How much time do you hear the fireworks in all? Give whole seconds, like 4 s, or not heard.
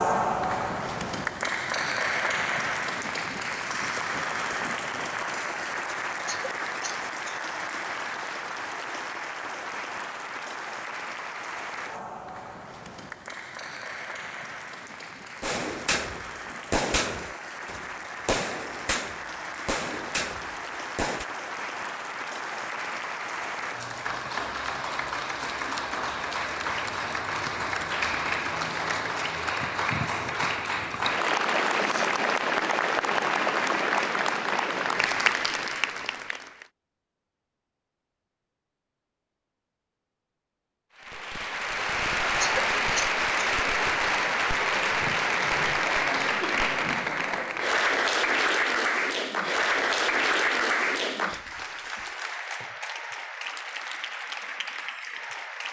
6 s.